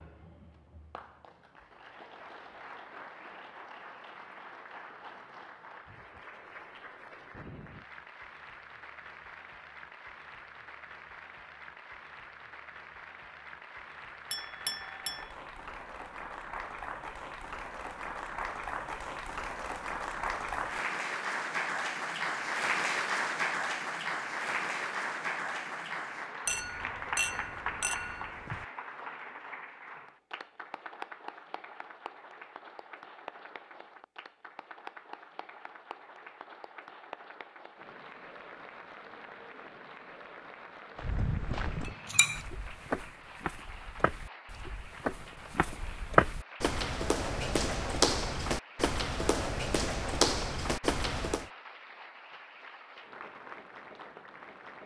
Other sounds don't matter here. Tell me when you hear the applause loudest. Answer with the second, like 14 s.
23 s.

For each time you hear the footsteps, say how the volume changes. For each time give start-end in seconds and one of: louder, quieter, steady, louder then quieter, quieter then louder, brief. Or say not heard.
41.0-51.5 louder.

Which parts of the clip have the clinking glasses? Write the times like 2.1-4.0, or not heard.
14.3-15.3, 26.4-28.6, 41.9-42.4.